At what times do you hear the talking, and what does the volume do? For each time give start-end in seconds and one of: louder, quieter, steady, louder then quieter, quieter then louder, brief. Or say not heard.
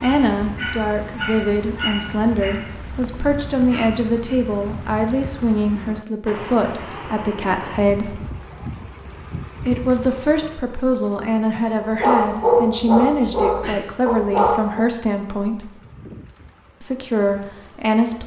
0.0-8.2 steady
9.7-15.7 steady
16.8-18.2 brief.